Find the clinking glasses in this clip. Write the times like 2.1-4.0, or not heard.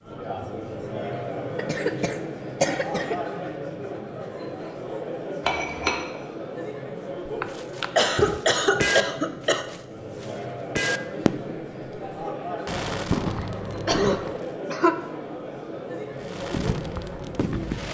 5.4-6.0.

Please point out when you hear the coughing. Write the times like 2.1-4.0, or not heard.
1.6-3.1, 7.4-9.7, 13.4-14.9.